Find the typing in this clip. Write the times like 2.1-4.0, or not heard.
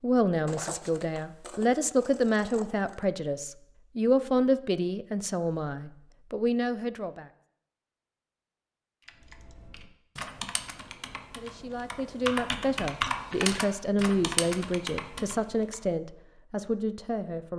9.1-15.8.